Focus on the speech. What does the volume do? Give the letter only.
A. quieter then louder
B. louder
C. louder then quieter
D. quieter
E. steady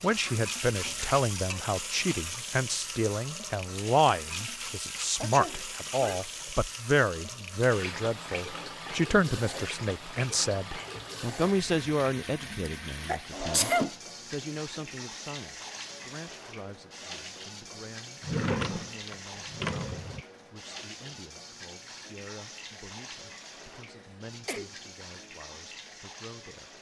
D.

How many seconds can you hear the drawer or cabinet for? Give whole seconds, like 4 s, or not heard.
4 s.